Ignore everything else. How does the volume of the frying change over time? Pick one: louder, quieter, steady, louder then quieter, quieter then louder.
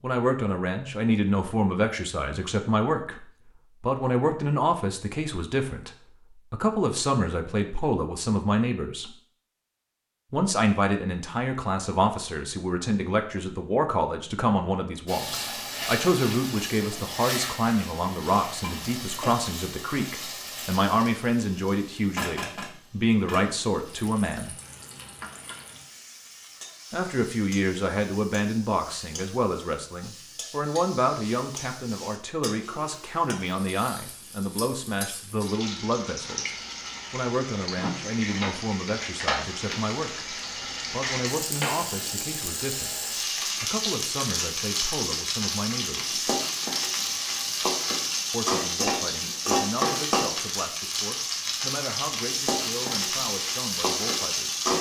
quieter then louder.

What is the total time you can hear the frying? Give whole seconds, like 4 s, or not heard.
40 s.